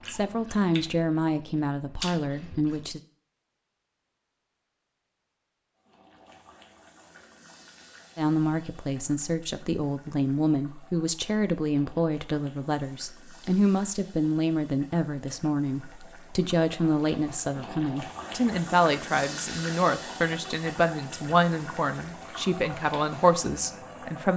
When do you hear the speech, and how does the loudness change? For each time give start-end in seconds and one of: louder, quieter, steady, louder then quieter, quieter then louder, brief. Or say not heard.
0.1-3.0 brief
8.2-24.3 steady.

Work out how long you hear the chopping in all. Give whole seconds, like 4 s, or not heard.
not heard.